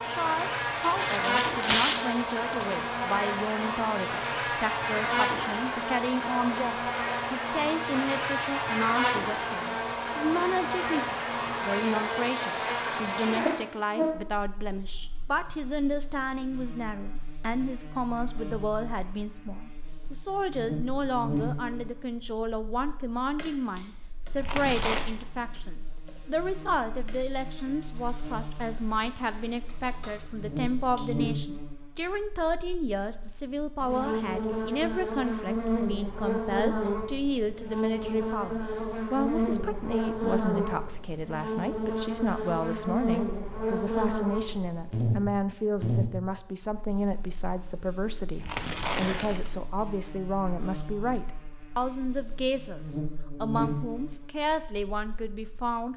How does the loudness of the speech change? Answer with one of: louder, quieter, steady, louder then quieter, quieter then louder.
steady.